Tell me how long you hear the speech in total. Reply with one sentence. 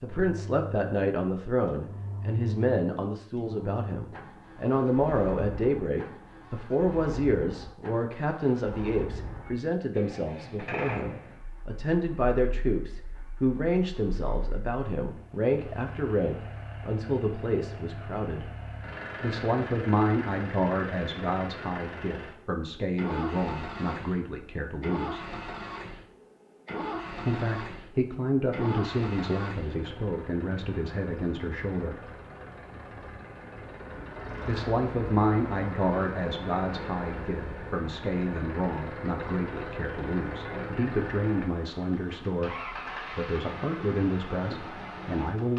You can hear the speech for 40 seconds altogether.